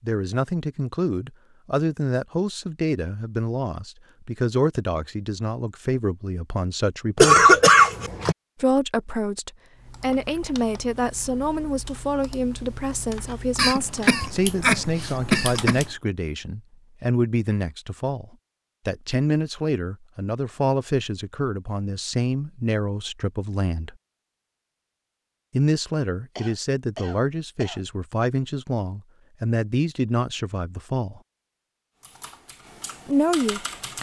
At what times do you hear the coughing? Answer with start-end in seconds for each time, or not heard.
7.2-8.3, 13.6-15.8, 26.4-27.8.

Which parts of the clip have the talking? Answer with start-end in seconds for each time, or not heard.
0.0-7.5, 8.6-23.9, 25.5-31.2, 33.0-33.9.